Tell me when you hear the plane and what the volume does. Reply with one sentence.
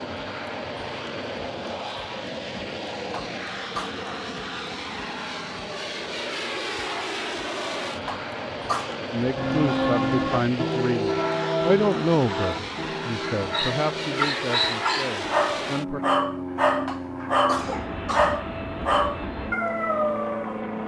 The plane can be heard from 0.0 to 20.8 s, at a steady volume.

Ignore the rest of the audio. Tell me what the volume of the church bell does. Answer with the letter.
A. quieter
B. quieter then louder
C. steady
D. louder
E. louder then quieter
A.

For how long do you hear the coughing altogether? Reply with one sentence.
You can hear the coughing for 3 seconds altogether.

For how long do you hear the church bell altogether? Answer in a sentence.
You can hear the church bell for 6 seconds altogether.